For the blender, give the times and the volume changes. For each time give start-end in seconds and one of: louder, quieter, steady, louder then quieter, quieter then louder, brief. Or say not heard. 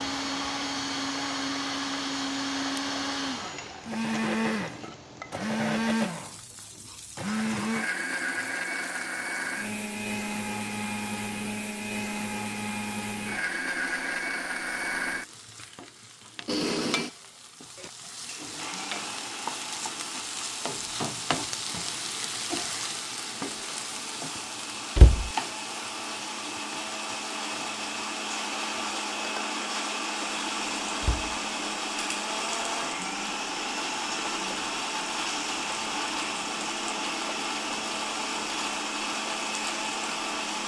0.0-40.6 quieter then louder.